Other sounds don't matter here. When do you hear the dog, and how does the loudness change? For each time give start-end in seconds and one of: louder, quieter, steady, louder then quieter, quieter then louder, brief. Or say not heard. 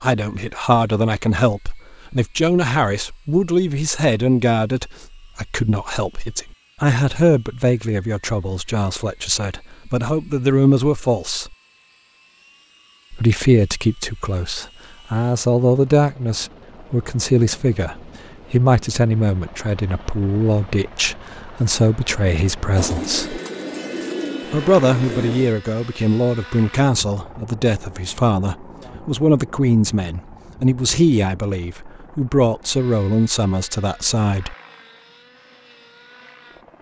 not heard.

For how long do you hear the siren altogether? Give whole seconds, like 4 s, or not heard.
not heard.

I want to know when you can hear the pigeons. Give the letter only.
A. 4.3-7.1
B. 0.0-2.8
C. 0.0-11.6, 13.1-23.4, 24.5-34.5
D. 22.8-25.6
D.